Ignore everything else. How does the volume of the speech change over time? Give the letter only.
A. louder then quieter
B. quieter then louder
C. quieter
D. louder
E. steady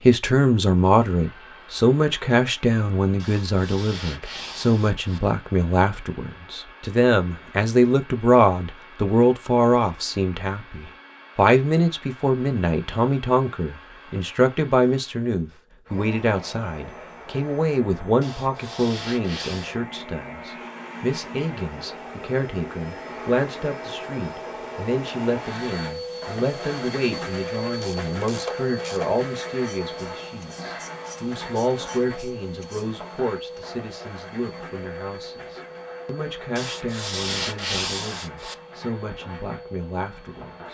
C.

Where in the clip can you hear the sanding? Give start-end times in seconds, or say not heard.
3.1-5.2, 18.2-19.8, 36.5-38.5.